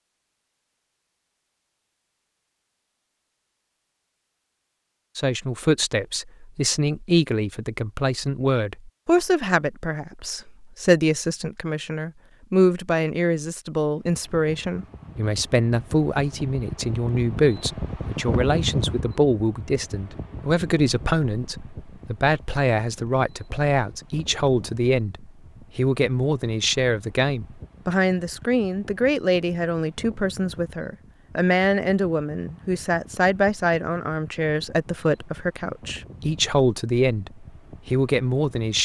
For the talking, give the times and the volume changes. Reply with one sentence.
The talking can be heard from 5.2 to 38.7 s, at a steady volume.